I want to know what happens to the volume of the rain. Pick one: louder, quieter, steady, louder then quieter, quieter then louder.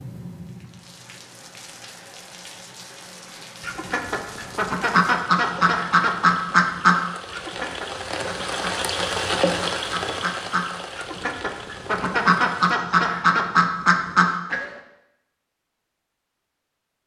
louder then quieter.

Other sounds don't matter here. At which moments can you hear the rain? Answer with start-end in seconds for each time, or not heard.
0.0-12.8.